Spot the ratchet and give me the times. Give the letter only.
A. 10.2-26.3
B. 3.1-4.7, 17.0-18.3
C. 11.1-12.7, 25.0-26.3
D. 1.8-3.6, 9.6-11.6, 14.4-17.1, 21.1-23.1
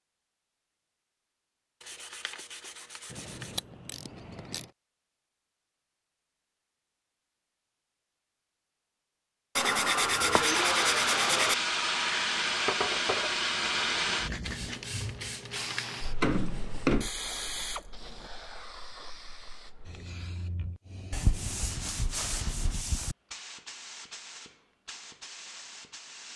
B.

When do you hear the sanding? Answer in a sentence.
The sanding can be heard from 1.8 to 3.6 s, from 9.6 to 11.6 s, from 14.4 to 17.1 s and from 21.1 to 23.1 s.